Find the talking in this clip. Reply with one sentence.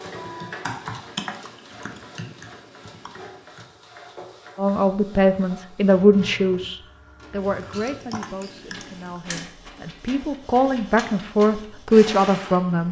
The talking can be heard from 4.5 to 12.8 s.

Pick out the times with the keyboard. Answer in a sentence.
You can hear the keyboard from 0.0 to 3.6 s and from 7.3 to 9.2 s.